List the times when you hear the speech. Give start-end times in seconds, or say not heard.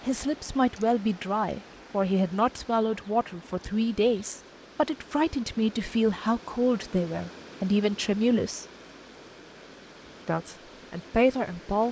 0.0-8.7, 10.2-11.8.